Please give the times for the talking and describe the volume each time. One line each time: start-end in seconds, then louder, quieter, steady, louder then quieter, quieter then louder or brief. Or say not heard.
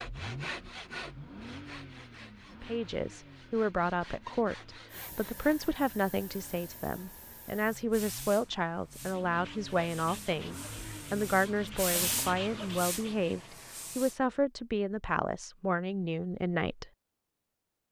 2.6-16.9 steady.